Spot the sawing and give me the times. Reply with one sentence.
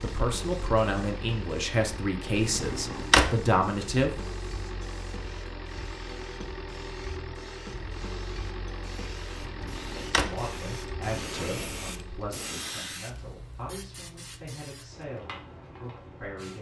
You can't hear the sawing here.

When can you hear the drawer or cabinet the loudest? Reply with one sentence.
The volume of the drawer or cabinet peaks at 3 seconds.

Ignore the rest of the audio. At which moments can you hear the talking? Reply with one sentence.
The talking can be heard from 0.0 to 4.2 s and from 10.2 to 16.5 s.